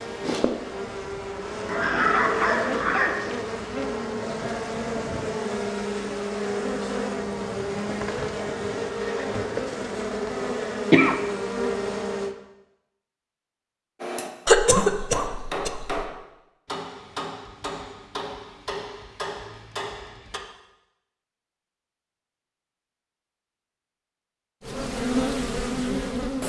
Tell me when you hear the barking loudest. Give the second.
2 s.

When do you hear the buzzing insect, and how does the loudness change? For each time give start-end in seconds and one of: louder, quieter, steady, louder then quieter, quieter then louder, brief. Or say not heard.
0.0-12.3 steady
24.6-26.4 brief.